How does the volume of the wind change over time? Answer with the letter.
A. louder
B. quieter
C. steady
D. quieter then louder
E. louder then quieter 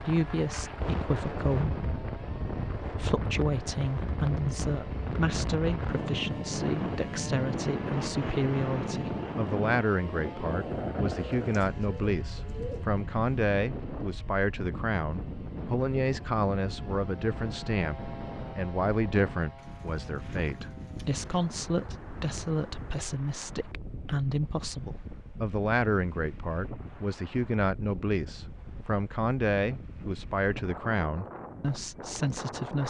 B.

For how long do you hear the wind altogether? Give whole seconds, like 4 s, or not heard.
33 s.